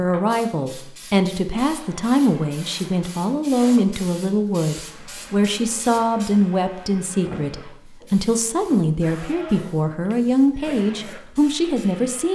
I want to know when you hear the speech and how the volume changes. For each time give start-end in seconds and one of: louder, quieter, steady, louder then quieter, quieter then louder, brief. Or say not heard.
0.0-12.3 steady.